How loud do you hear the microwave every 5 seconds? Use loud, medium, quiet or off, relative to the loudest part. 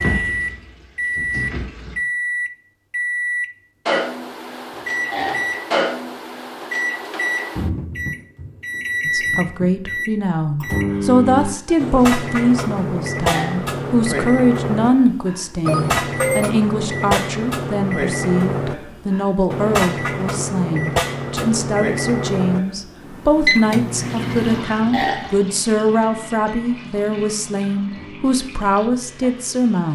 loud, loud, loud, loud, loud, quiet.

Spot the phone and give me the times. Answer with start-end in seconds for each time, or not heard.
15.7-16.5.